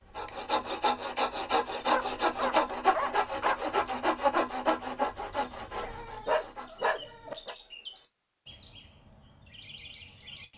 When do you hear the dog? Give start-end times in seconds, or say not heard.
1.9-3.6, 5.8-7.5.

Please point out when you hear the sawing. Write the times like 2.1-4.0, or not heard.
0.1-6.8.